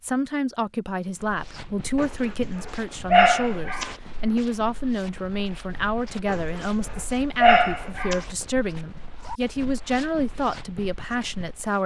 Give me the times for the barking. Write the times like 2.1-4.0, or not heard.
1.9-3.9, 6.2-8.2.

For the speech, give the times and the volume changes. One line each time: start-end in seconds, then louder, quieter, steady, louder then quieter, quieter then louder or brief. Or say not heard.
0.0-11.8 steady.